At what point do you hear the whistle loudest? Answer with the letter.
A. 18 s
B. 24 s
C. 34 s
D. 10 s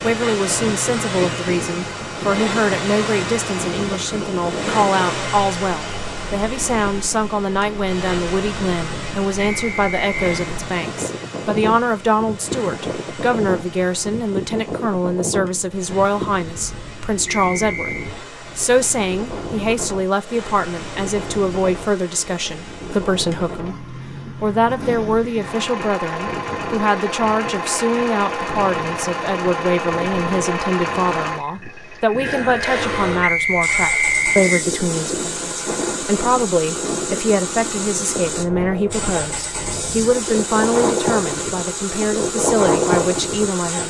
C.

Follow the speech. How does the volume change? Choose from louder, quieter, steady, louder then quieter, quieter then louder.
steady.